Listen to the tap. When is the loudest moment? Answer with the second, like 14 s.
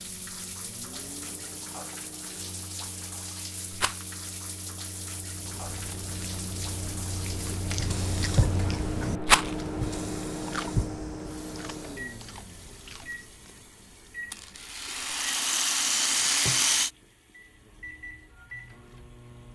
10 s.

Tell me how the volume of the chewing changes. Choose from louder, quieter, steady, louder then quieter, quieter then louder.
louder then quieter.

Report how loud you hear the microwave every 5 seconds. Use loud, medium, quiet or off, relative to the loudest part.
medium, loud, loud, medium.